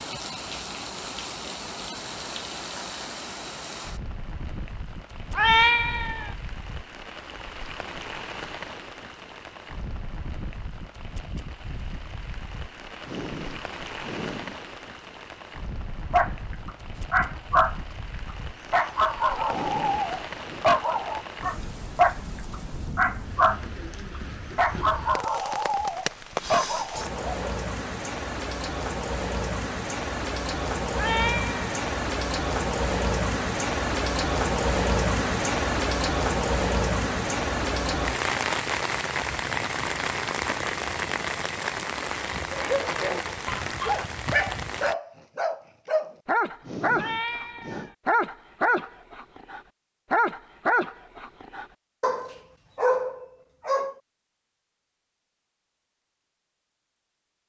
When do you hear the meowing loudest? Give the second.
6 s.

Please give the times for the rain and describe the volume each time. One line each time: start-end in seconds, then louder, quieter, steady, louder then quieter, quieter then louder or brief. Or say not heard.
0.0-45.0 louder.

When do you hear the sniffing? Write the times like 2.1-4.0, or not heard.
13.0-14.6, 19.4-20.7, 46.6-47.9.